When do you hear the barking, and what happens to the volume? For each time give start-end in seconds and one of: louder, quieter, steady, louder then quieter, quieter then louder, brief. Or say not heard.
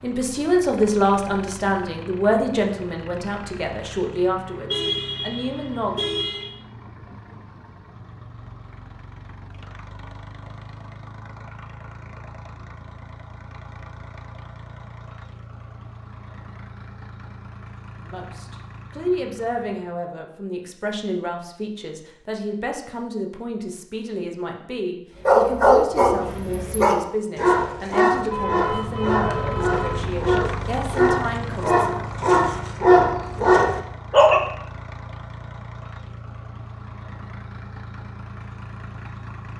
25.2-34.4 quieter then louder.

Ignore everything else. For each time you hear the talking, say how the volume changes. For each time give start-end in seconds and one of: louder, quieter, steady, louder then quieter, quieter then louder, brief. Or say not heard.
0.0-6.0 quieter
18.1-31.9 steady.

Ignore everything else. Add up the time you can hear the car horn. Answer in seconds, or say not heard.
4 s.